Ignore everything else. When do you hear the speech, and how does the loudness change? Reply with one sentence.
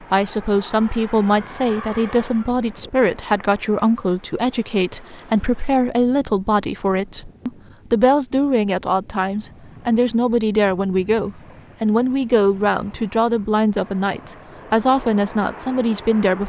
You can hear the speech from 0.0 to 16.4 s, at a steady volume.